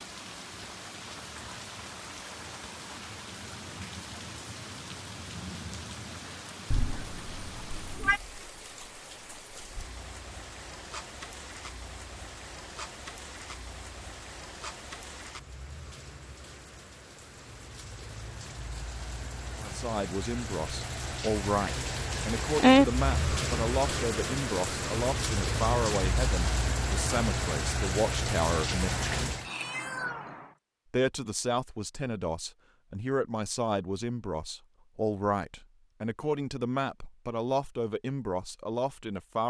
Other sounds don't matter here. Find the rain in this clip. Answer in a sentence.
The rain can be heard from 0.0 to 29.5 s.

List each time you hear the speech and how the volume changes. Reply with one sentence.
You can hear the speech from 19.6 to 29.4 s, at a steady volume; and from 30.9 to 39.4 s, at a steady volume.